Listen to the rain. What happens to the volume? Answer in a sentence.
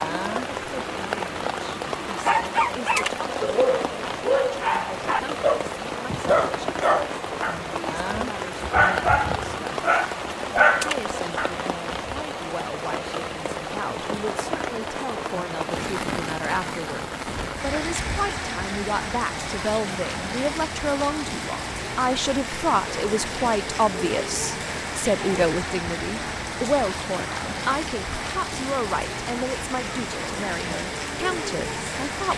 The loudness of the rain stays about the same.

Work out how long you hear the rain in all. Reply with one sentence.
The rain can be heard for 32 seconds in total.